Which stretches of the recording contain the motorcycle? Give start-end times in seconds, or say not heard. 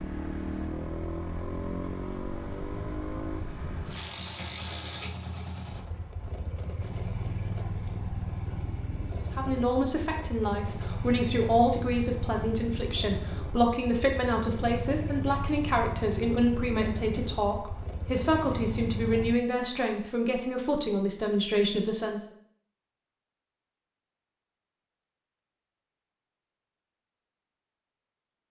0.0-19.4.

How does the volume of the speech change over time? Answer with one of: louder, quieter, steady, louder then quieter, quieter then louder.
steady.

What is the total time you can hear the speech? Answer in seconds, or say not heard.
13 s.